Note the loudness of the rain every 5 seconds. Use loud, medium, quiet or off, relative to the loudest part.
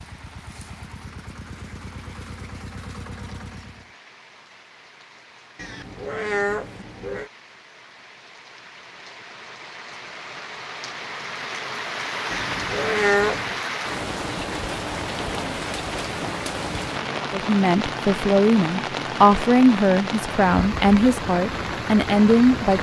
quiet, quiet, loud, loud, loud.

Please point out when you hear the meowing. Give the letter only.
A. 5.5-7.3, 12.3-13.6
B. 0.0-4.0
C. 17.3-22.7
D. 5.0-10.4
A.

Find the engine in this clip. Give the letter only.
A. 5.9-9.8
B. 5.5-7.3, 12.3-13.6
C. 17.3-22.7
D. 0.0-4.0
D.